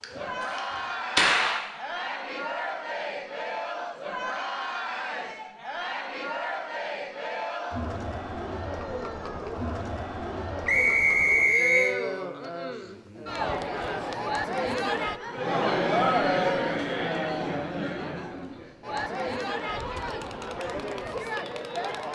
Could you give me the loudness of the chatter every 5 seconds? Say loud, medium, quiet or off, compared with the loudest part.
medium, medium, loud, loud, medium.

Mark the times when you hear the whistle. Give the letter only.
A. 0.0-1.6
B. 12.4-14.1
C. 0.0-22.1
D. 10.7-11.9
D.